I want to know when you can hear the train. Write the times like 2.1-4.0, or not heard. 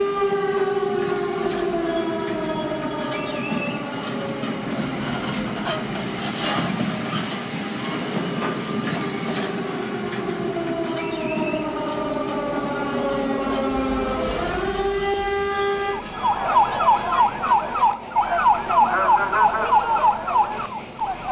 0.0-21.2.